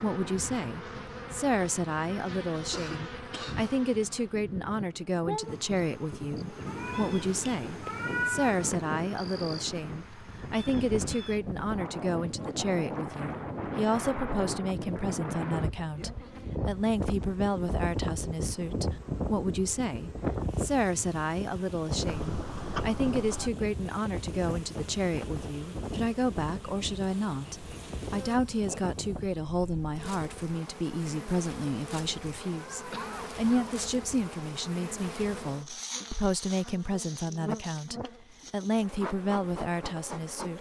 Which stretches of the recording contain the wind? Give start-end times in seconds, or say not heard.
0.1-30.4.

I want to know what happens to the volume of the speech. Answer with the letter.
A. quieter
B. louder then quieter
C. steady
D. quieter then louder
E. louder
C.